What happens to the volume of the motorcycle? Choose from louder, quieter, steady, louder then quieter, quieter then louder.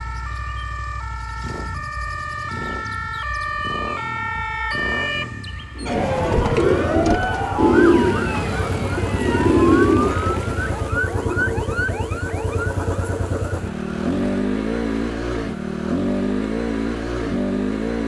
louder.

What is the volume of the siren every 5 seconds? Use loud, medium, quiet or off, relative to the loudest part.
loud, loud, medium, quiet.